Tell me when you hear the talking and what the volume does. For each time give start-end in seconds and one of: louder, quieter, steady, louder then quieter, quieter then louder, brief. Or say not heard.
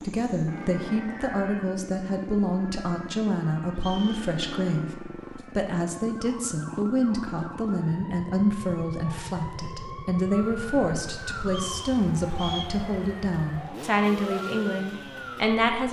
0.0-15.8 steady.